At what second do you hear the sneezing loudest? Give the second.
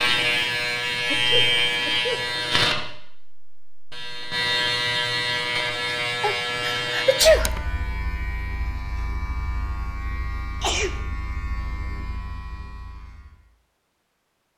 7 s.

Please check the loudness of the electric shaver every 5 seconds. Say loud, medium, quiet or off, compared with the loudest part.
loud, medium, quiet.